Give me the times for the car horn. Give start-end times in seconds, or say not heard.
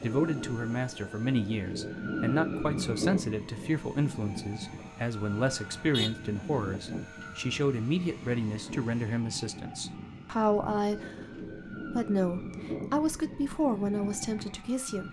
5.5-6.1.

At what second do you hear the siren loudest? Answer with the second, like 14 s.
3 s.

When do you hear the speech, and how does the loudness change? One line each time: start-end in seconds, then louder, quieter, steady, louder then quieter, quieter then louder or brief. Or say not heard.
0.0-15.0 steady.